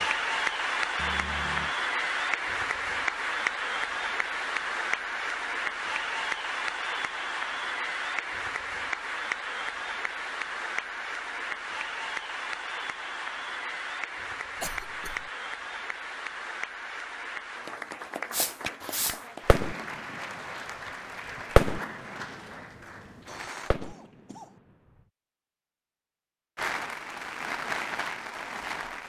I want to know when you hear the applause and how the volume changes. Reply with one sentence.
You can hear the applause from 0.0 to 23.7 s, getting quieter; and briefly from 26.6 to 29.0 s.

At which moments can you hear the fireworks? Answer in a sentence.
The fireworks can be heard from 18.3 to 20.1 s, from 21.6 to 22.2 s and from 23.7 to 24.4 s.